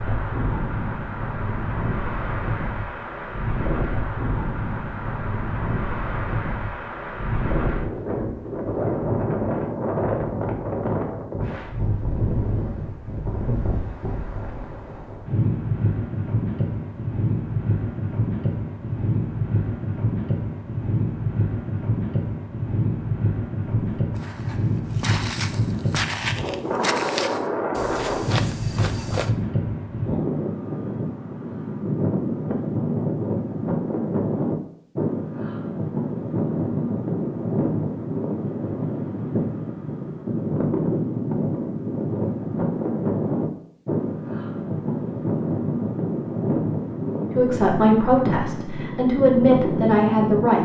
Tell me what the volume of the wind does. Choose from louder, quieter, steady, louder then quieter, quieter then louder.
steady.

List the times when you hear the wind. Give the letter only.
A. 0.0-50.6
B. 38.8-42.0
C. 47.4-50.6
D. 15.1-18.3
A.